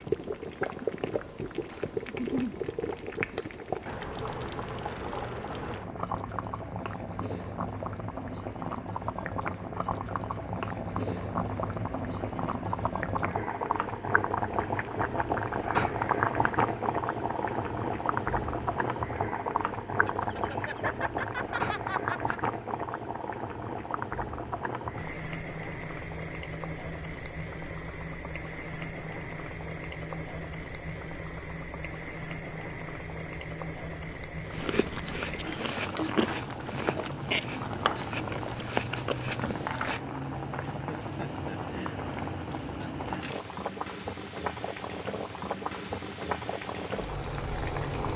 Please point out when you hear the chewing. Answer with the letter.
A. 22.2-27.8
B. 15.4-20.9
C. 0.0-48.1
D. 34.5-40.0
D.